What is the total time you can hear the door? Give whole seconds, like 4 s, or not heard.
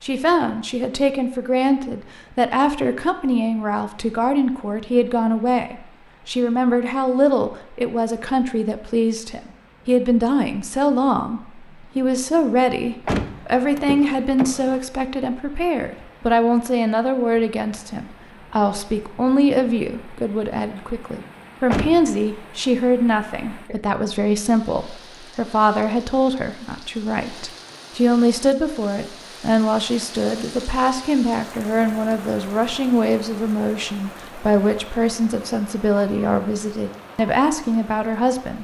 2 s.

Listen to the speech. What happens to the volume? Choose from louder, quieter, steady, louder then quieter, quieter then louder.
steady.